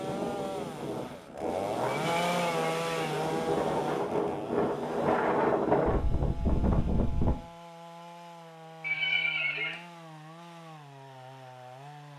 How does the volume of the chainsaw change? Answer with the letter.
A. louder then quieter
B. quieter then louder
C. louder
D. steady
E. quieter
E.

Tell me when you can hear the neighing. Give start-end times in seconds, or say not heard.
1.9-3.2, 8.8-9.8.